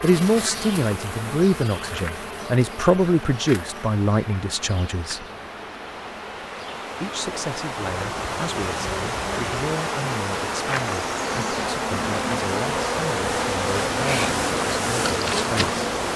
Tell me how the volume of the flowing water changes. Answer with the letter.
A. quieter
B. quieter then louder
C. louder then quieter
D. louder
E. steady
D.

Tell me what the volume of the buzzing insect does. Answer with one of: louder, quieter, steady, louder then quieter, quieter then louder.
quieter then louder.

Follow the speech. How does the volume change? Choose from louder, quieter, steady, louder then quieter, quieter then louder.
quieter.